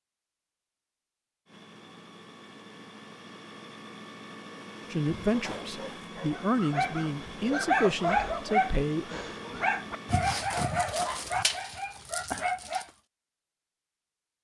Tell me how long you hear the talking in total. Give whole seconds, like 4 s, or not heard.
4 s.